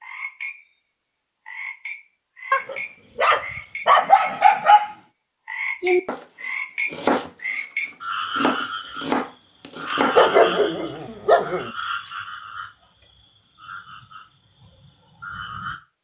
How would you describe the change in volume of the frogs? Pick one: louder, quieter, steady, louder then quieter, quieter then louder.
louder then quieter.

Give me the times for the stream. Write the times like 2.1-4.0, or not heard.
not heard.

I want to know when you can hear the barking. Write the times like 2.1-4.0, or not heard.
2.5-5.0, 10.2-11.7.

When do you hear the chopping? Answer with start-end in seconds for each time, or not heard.
5.8-6.2, 6.9-7.7, 8.3-10.6.